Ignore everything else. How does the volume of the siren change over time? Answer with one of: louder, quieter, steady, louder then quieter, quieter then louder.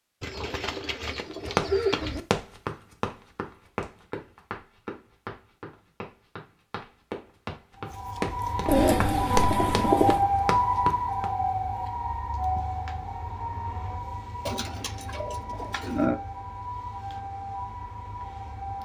quieter.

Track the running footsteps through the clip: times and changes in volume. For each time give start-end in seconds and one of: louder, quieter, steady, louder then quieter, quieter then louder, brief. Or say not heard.
1.1-11.2 quieter then louder.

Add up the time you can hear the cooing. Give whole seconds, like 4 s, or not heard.
5 s.